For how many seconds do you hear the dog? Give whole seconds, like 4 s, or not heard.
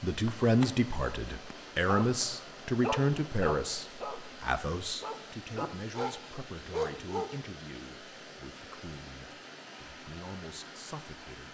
7 s.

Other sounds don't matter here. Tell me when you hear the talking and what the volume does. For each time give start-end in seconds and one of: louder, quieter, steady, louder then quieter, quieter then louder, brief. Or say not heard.
0.0-11.4 quieter.